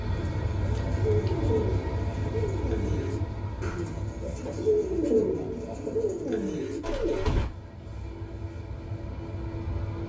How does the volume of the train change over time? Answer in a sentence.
The volume of the train goes down, then up.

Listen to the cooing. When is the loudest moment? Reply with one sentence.
The loudest moment of the cooing is at 5 seconds.